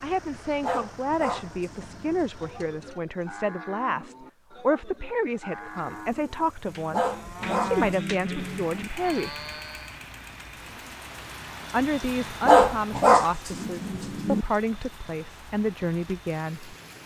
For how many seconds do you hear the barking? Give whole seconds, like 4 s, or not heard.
6 s.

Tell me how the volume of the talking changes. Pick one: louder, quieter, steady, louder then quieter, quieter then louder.
steady.